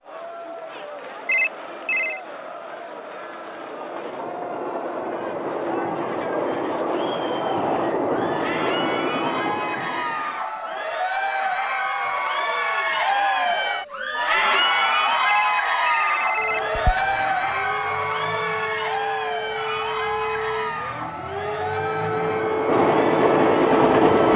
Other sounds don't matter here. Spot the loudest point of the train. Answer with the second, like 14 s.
24 s.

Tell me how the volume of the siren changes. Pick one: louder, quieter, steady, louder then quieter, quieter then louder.
louder.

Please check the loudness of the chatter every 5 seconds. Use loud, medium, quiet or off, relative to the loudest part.
quiet, medium, loud, loud, medium.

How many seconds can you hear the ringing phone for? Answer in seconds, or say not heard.
3 s.